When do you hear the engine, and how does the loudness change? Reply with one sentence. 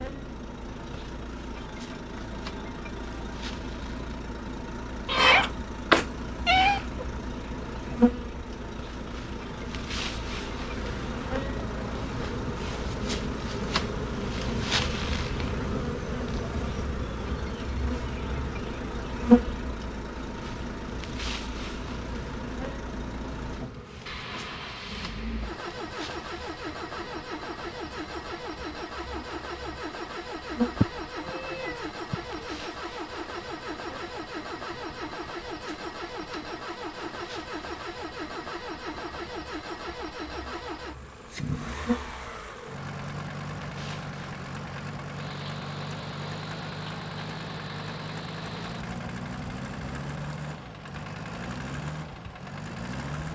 The engine can be heard from 0.0 to 53.2 s, at a steady volume.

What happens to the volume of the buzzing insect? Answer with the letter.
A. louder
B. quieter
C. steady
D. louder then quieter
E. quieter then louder
D.